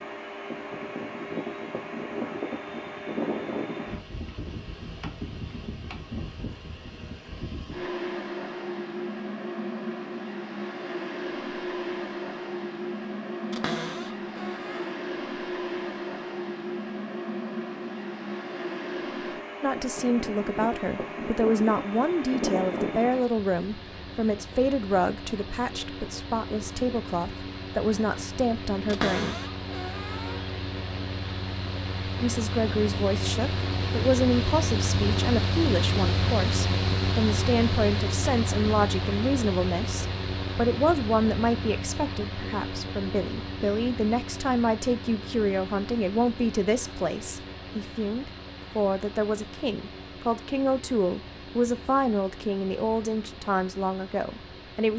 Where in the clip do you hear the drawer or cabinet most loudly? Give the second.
29 s.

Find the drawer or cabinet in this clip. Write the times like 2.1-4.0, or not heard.
13.5-14.9, 28.9-30.6.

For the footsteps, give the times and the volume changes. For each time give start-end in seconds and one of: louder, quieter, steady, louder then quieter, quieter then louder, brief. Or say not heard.
not heard.